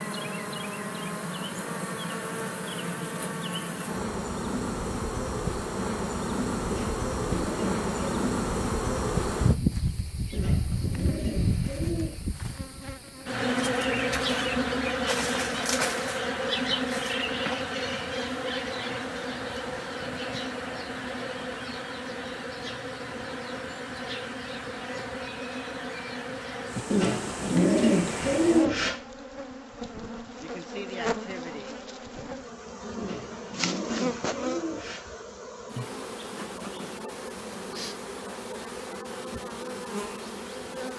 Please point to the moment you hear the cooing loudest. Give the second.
28 s.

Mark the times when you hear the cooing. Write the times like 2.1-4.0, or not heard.
6.7-8.2, 10.3-12.2, 26.9-28.9, 33.0-35.0.